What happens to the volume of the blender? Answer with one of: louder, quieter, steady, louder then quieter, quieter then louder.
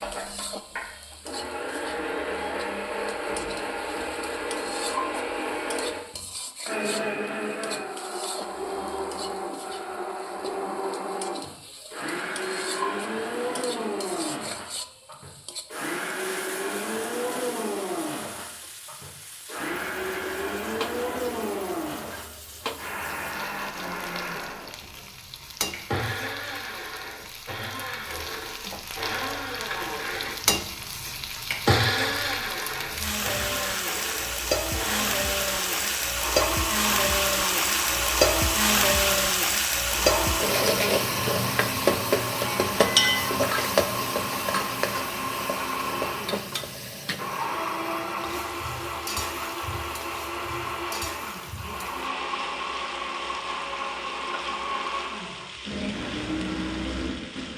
steady.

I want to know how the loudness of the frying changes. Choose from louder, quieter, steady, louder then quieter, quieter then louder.
louder then quieter.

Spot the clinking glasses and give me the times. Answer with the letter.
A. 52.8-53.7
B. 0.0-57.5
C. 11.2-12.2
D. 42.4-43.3
D.